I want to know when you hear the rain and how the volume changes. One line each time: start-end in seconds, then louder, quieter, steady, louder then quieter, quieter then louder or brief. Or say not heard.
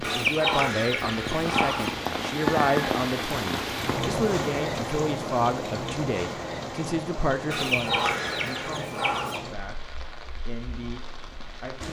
0.0-11.8 quieter.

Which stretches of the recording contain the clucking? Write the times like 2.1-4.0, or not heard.
0.0-1.9, 7.5-9.4.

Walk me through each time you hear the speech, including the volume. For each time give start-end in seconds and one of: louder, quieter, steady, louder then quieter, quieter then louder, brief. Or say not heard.
0.0-11.8 quieter.